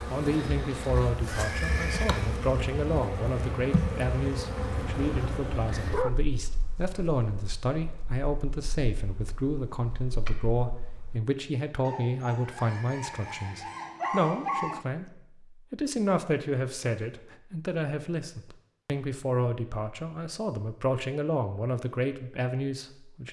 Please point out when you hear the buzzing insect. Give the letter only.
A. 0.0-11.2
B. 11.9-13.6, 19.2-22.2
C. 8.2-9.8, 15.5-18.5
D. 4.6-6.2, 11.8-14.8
A.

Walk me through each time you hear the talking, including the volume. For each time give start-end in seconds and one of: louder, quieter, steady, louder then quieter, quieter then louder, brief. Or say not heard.
0.1-23.2 steady.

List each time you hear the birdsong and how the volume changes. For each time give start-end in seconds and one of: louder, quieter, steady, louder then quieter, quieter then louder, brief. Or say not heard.
not heard.